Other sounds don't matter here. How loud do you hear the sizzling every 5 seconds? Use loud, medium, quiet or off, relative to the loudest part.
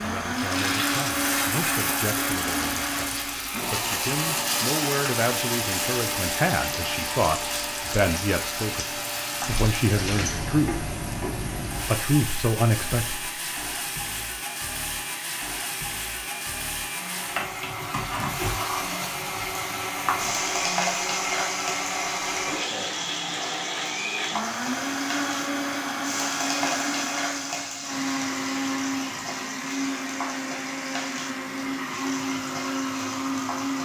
loud, loud, loud, loud, loud, loud, medium.